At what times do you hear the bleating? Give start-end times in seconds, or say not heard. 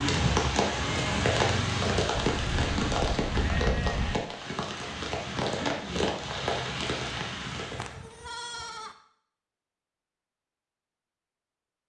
2.1-4.2, 7.5-8.9.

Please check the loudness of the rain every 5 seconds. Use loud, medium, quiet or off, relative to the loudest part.
loud, loud, off.